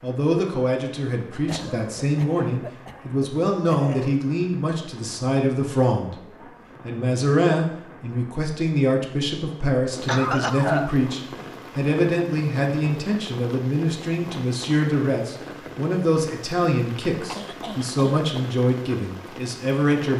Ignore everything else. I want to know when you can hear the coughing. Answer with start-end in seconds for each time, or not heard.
1.4-4.2, 10.1-10.9, 17.2-18.5.